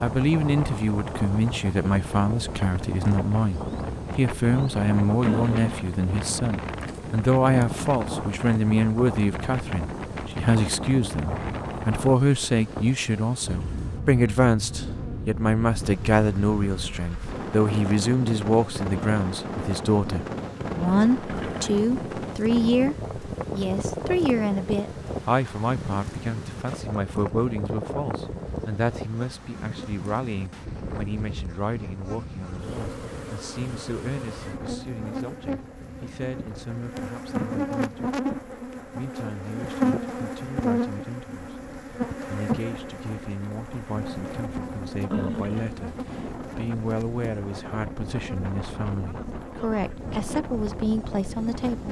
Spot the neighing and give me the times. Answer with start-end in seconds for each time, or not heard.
5.2-5.9, 21.2-21.8, 45.1-46.4.